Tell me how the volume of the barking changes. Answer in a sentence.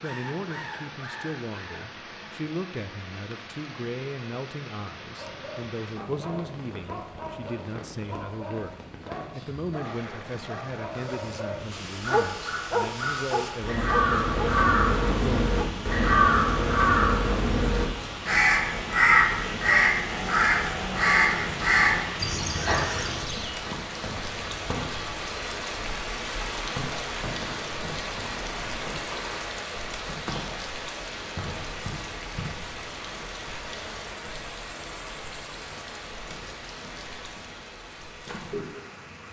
The loudness of the barking goes up.